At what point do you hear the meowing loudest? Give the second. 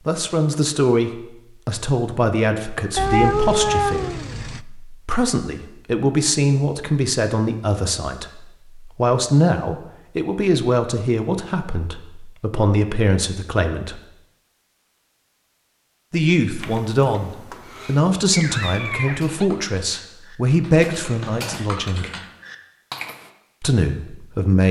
3 s.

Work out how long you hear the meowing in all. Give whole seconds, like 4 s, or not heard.
3 s.